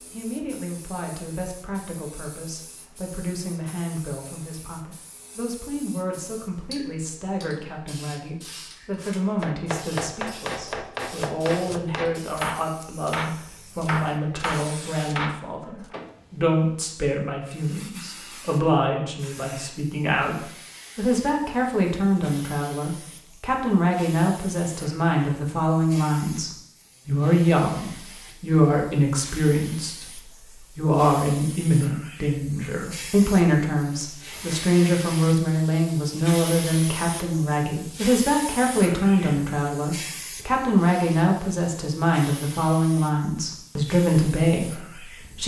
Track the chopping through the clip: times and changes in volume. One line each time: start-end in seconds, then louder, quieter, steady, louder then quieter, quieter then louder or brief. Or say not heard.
9.4-15.9 steady.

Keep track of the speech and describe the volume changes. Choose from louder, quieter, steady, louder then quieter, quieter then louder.
louder.